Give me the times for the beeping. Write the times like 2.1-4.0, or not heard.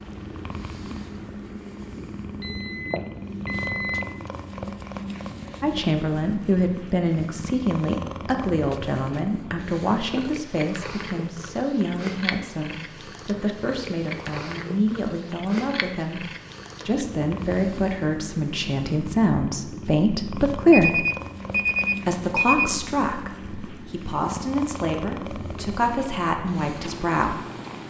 2.4-4.0, 20.7-22.7.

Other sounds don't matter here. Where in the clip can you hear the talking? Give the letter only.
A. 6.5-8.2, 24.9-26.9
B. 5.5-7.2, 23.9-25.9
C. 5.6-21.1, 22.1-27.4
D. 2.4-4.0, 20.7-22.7
C.